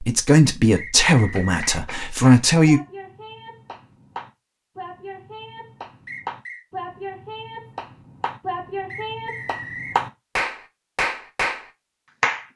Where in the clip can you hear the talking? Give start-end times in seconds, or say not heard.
0.0-2.8.